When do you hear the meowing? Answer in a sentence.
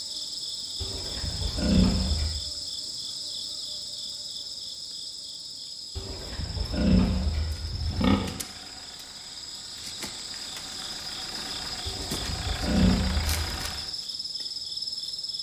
The meowing can't be heard in this clip.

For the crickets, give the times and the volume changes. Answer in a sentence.
You can hear the crickets from 0.0 to 15.3 s, getting quieter then louder.